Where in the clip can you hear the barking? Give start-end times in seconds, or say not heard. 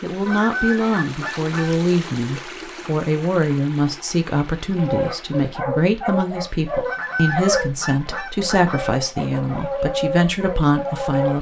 4.8-11.3.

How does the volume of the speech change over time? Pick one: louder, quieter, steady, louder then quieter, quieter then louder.
steady.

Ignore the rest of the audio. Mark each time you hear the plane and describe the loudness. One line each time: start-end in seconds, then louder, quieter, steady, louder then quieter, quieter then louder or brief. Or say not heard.
not heard.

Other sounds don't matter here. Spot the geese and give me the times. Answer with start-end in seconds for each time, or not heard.
0.2-1.7, 6.8-8.9.